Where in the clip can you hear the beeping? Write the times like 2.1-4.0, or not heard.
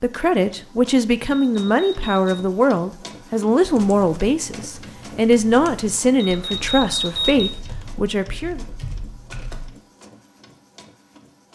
1.3-2.4, 6.2-7.5.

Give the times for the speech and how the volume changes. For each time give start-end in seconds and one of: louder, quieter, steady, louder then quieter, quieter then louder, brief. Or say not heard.
0.0-8.6 steady.